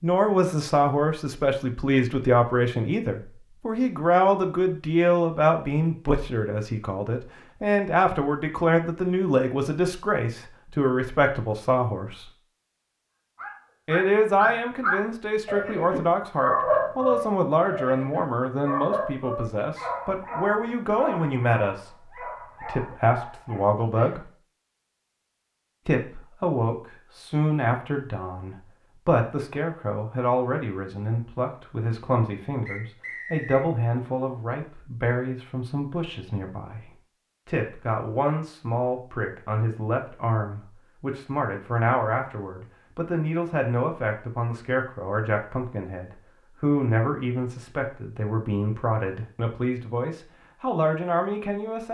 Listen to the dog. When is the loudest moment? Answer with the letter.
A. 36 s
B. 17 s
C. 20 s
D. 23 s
B.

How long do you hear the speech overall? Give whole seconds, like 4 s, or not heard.
49 s.